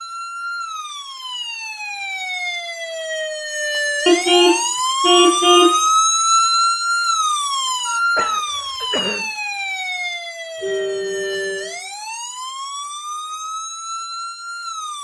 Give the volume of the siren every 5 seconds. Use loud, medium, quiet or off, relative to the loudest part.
medium, loud, medium.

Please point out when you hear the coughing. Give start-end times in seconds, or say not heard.
8.2-9.3.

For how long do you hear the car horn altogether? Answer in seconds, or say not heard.
3 s.